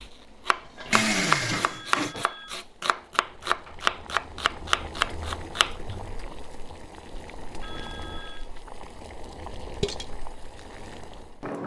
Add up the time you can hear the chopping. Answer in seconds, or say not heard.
6 s.